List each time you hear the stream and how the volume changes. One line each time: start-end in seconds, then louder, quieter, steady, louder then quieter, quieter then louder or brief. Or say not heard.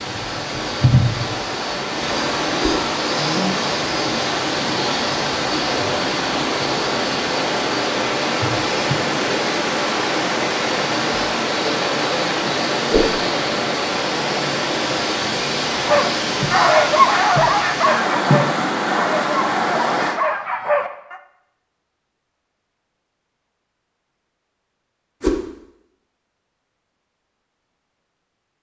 0.0-20.2 steady.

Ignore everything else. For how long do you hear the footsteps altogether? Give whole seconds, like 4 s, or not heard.
not heard.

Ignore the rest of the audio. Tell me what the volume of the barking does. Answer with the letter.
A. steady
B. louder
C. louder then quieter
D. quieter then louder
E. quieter
E.